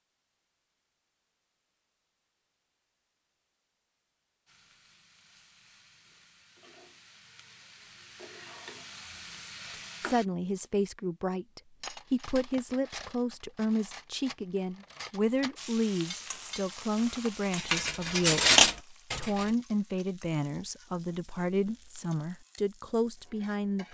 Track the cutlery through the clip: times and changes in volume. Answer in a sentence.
You can hear the cutlery from 11.8 to 19.5 s, getting louder.